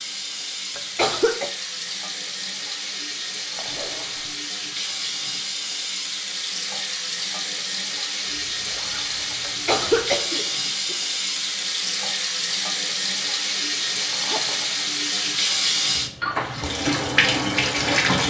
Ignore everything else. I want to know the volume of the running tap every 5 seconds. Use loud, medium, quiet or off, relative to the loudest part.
medium, medium, loud, loud.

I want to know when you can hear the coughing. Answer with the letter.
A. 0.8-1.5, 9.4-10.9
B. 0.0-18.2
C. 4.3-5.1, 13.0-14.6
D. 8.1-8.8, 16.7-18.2
A.